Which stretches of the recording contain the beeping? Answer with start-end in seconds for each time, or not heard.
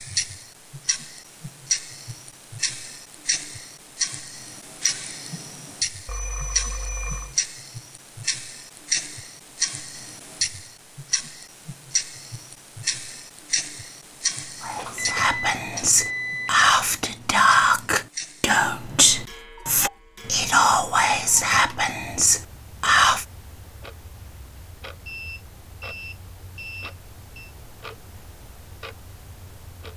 6.0-7.3, 14.8-16.7, 25.1-27.6.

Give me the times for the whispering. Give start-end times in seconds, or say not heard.
14.6-23.2.